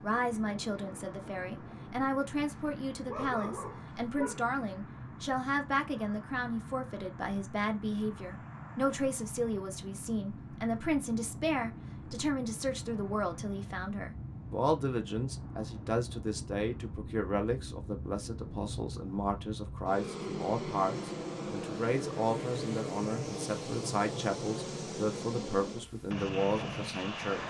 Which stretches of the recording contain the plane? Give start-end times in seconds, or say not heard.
0.0-27.4.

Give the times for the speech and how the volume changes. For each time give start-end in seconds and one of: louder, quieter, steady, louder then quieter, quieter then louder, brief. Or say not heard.
0.0-27.4 steady.